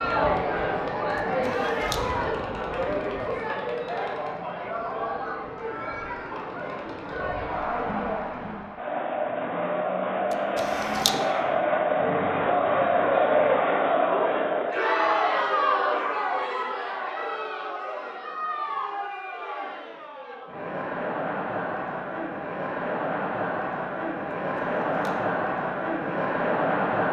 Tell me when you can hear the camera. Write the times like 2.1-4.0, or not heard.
1.1-2.0, 10.3-11.2, 24.6-25.1.